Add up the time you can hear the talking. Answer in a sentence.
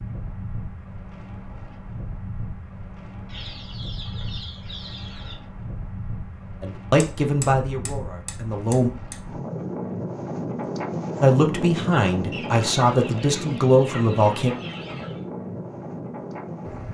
You can hear the talking for 6 seconds altogether.